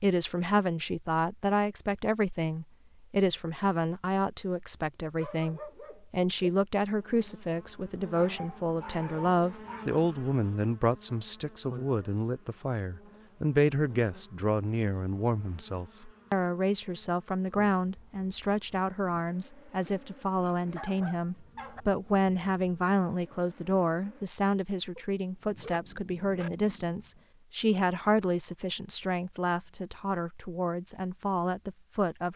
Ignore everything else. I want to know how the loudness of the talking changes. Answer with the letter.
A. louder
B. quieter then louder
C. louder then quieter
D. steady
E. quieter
D.